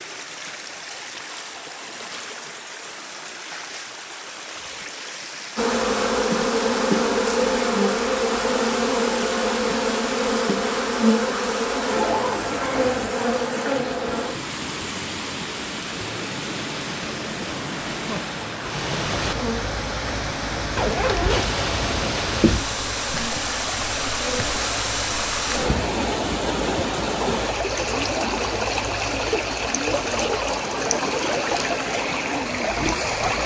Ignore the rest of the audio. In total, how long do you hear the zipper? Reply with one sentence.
The zipper can be heard for 3 seconds in total.